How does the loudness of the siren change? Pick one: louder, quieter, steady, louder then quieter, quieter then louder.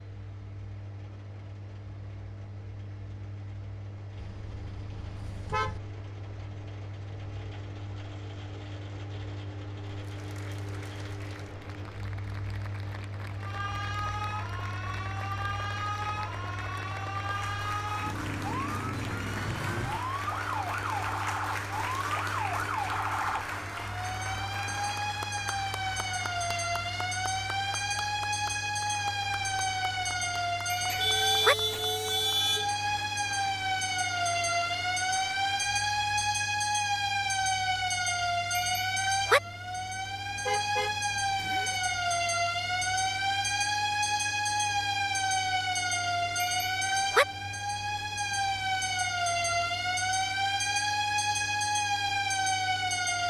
louder.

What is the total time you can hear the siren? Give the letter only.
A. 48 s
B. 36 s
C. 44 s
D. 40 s
D.